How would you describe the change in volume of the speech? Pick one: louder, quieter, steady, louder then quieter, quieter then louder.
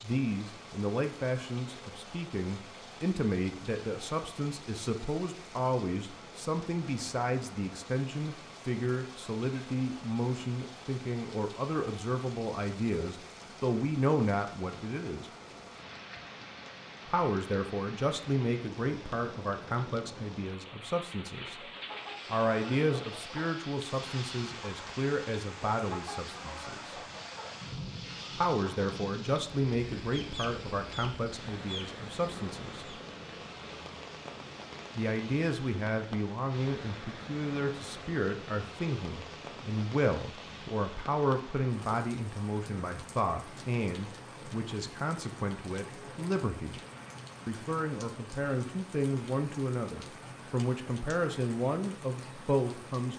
steady.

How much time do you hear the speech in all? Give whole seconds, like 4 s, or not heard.
47 s.